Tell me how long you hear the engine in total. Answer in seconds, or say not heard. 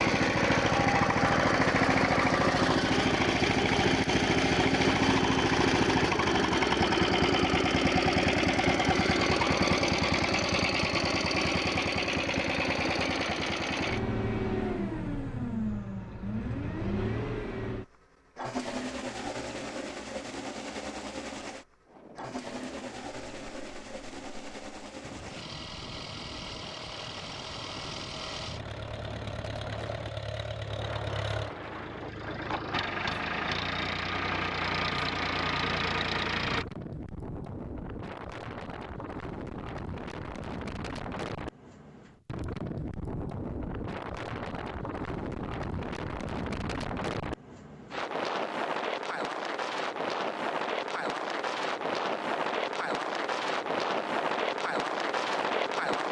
37 s.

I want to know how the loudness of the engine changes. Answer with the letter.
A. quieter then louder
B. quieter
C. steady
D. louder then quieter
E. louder
A.